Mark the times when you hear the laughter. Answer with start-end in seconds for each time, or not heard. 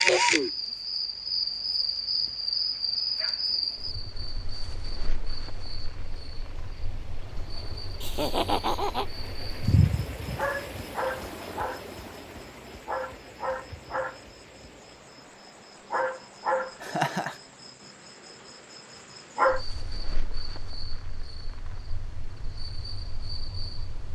8.0-9.1, 16.8-17.4.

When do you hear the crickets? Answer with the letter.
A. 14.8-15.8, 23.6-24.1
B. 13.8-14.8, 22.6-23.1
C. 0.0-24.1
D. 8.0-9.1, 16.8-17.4
C.